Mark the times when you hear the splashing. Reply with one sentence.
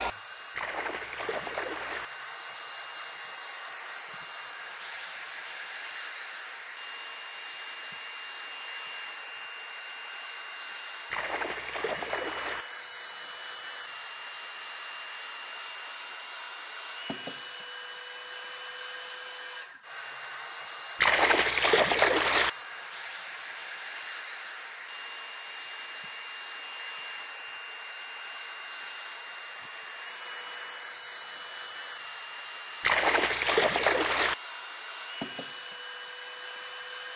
The splashing can be heard from 0.6 to 2.1 s, from 11.1 to 12.7 s, from 21.0 to 22.5 s and from 32.8 to 34.4 s.